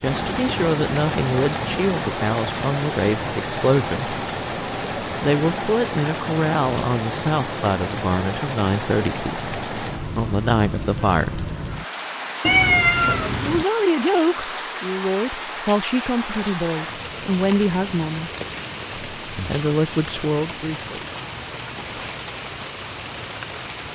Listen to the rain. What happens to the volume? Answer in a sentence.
The loudness of the rain goes down.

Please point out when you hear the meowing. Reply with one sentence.
The meowing can be heard from 12.4 to 13.7 s.